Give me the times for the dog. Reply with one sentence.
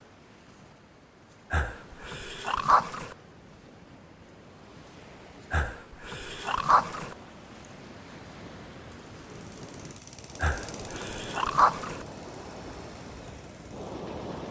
You can hear the dog from 1.5 to 3.1 s, from 5.5 to 7.2 s and from 10.4 to 12.1 s.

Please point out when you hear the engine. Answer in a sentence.
You can hear the engine from 9.2 to 14.4 s.